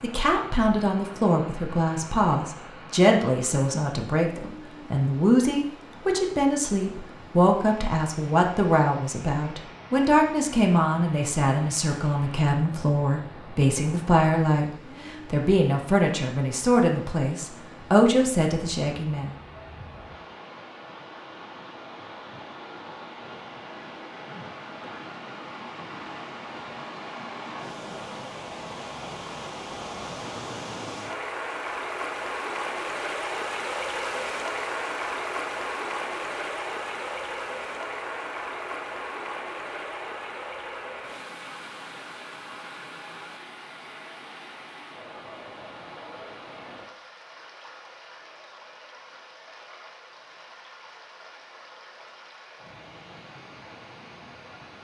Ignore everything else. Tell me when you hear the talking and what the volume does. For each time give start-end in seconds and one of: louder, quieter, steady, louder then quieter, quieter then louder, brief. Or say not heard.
0.0-19.3 steady.